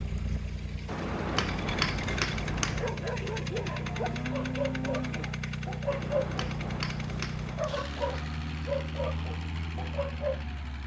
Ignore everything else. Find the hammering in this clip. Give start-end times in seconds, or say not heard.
0.8-2.9, 5.8-7.7.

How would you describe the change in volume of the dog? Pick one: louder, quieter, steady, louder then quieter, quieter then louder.
steady.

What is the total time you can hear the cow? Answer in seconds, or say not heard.
2 s.